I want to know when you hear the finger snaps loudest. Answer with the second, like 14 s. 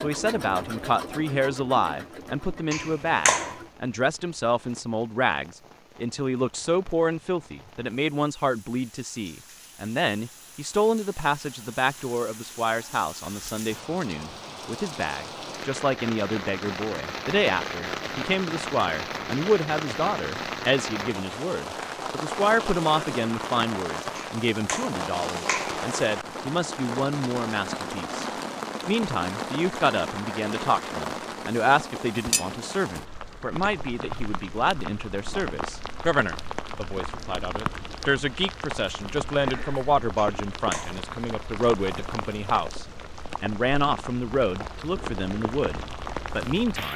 3 s.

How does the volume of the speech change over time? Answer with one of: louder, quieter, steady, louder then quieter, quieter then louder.
steady.